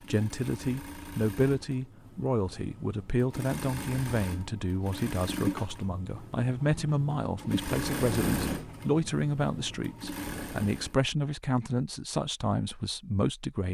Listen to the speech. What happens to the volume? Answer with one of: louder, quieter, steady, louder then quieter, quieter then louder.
steady.